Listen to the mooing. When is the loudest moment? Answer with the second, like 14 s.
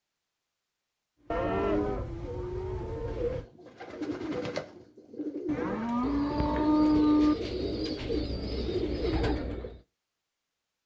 7 s.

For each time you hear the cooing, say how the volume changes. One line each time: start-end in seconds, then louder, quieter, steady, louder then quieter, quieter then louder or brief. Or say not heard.
1.2-9.8 louder.